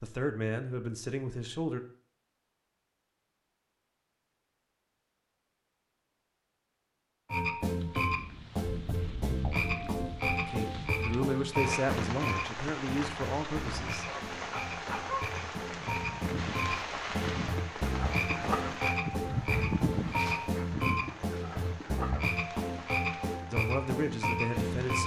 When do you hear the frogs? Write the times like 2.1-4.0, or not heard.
7.3-25.0.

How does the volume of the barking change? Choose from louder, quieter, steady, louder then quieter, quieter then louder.
louder then quieter.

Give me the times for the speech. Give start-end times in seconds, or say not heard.
0.0-1.8, 10.4-14.1, 23.5-25.0.